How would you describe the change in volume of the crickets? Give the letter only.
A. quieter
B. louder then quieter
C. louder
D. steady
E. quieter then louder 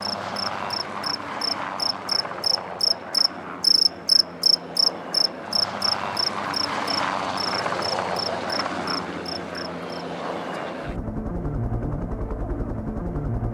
B.